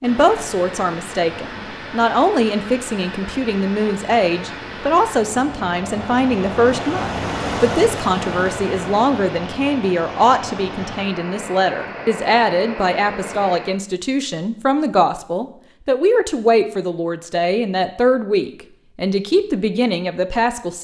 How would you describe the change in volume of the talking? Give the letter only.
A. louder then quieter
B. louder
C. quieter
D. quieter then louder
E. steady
E.